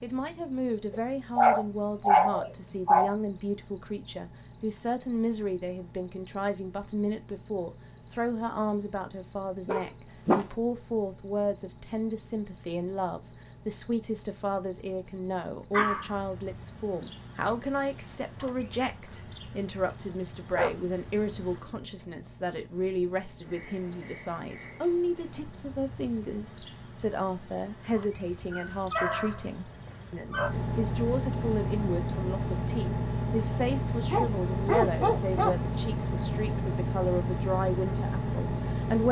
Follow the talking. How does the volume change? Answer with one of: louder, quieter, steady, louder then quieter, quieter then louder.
steady.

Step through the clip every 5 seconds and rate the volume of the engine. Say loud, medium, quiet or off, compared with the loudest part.
quiet, quiet, quiet, quiet, quiet, quiet, loud, loud.